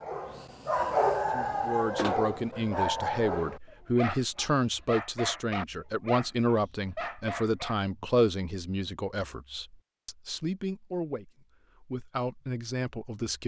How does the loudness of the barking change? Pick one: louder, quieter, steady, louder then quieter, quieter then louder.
quieter.